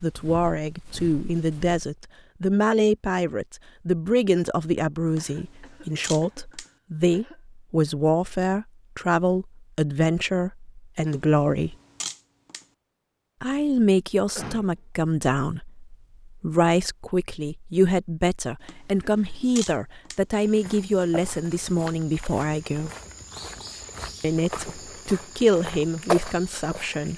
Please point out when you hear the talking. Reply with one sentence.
The talking can be heard from 0.0 to 11.8 s, from 13.4 to 22.9 s and from 24.2 to 27.1 s.